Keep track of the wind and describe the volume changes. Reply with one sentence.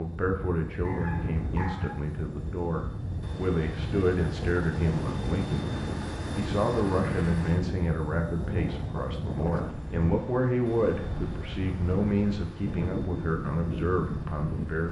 The loudness of the wind stays about the same.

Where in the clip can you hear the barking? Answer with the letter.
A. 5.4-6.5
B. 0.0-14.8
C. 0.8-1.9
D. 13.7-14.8
C.